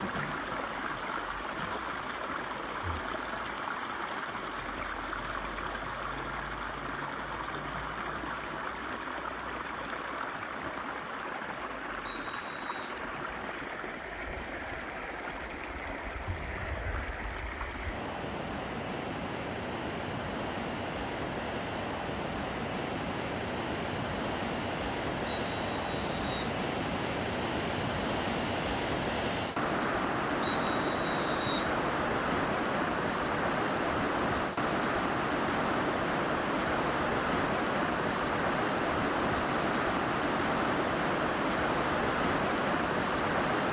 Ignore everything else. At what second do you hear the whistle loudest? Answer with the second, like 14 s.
31 s.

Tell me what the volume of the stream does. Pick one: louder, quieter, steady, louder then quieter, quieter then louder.
louder.